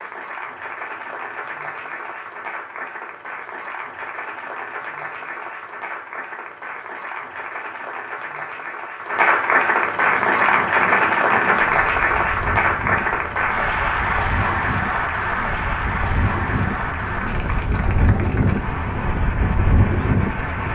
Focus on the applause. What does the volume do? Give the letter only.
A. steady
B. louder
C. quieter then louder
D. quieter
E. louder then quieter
E.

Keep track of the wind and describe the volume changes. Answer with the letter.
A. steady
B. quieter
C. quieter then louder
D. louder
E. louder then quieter
D.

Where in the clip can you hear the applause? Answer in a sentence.
You can hear the applause from 0.0 to 20.7 s.